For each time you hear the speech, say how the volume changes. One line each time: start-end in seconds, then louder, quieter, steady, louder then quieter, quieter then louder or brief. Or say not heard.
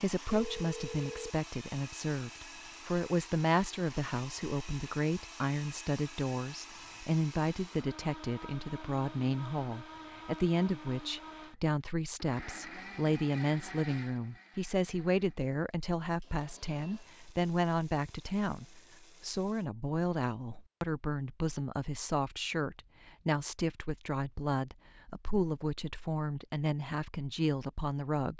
0.0-28.3 steady.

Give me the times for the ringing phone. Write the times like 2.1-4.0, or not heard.
0.3-1.4.